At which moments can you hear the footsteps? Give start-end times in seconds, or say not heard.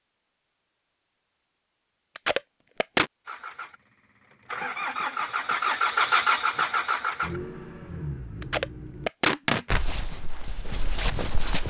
9.7-11.6.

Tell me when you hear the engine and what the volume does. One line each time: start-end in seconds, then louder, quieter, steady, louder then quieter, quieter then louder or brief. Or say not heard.
3.2-9.1 louder then quieter.